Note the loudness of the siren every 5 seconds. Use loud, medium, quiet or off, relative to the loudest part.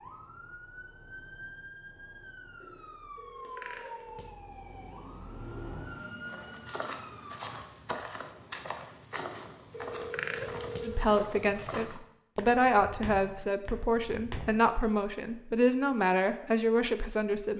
loud, loud, off, off.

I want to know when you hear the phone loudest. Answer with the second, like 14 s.
10 s.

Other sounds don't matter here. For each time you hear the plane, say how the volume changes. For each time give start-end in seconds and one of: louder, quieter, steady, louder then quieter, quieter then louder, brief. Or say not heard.
not heard.